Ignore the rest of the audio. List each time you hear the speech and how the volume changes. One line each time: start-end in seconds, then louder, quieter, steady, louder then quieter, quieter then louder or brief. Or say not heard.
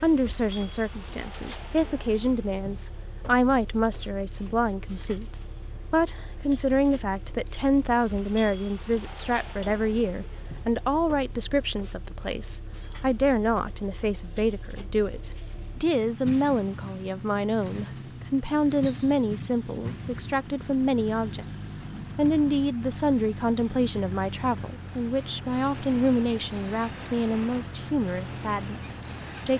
0.0-29.5 steady.